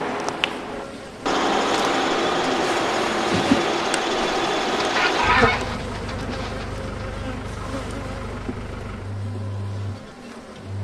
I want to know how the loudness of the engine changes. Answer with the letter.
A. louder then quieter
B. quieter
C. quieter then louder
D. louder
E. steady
B.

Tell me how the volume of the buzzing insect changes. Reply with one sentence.
The loudness of the buzzing insect goes up, then down.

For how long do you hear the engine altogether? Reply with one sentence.
You can hear the engine for 11 seconds altogether.